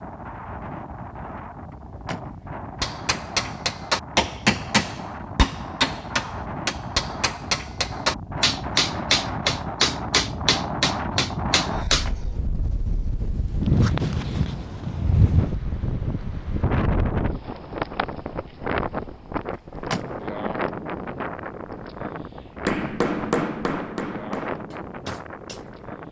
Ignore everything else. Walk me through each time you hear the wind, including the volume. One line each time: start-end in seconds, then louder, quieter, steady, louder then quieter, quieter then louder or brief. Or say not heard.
0.0-26.0 louder then quieter.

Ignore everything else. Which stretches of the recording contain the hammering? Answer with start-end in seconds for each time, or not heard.
2.8-12.1, 22.6-26.0.